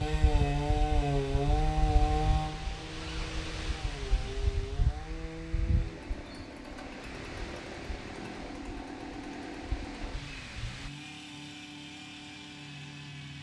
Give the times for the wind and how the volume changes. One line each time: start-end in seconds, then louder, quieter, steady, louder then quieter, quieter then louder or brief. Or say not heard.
0.0-10.9 quieter.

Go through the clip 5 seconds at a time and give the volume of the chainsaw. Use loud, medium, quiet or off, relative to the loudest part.
loud, medium, medium.